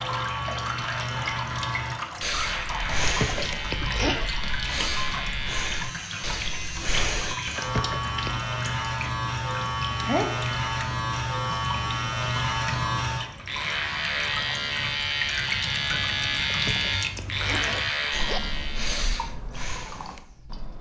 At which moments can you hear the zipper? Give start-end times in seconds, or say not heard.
3.0-4.3, 7.5-8.5, 16.4-18.4.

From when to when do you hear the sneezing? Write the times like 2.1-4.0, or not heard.
10.1-10.7.